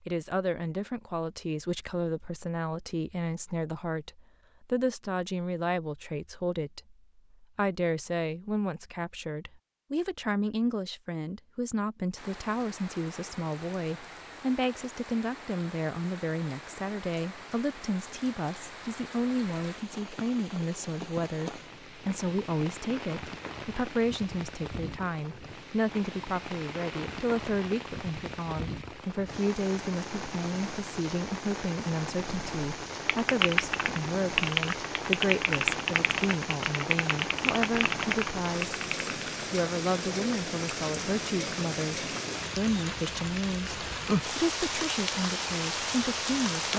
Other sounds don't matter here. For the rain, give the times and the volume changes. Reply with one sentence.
You can hear the rain from 12.2 to 46.7 s, getting louder.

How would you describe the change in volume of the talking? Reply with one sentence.
The loudness of the talking stays about the same.